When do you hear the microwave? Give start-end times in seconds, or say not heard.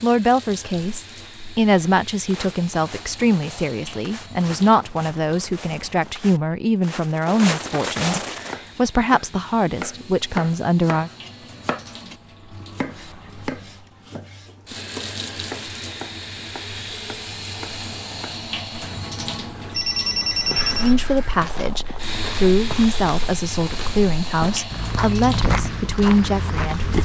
not heard.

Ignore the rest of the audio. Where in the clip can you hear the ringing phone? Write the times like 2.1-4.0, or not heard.
18.8-20.9.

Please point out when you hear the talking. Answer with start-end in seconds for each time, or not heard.
0.0-11.1, 20.8-26.9.